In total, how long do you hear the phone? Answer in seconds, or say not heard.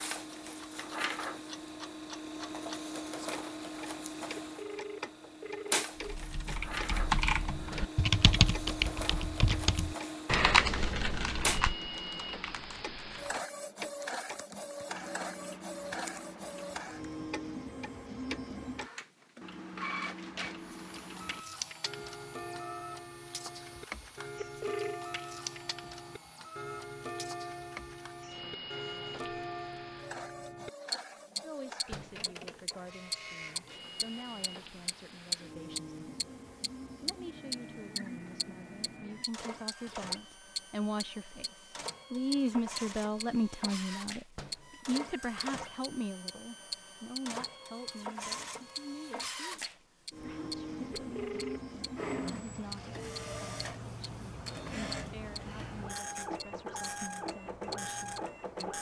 4 s.